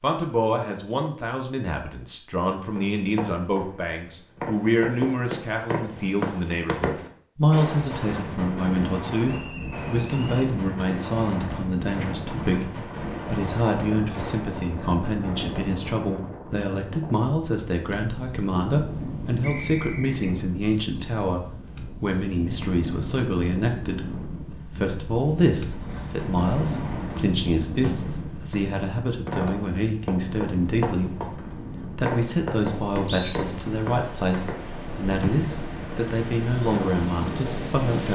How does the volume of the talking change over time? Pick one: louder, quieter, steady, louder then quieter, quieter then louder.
steady.